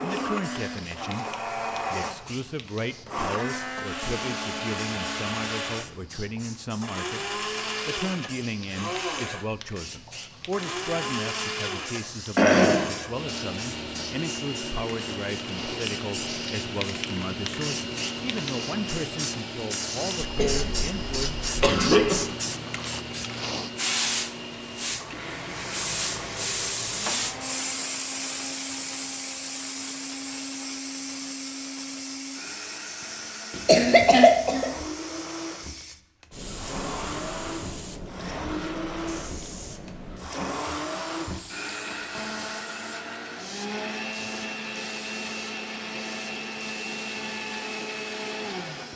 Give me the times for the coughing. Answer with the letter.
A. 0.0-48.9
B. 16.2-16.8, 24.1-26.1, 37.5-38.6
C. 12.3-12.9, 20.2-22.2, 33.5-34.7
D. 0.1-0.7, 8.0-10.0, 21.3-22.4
C.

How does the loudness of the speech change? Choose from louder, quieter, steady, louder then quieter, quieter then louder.
steady.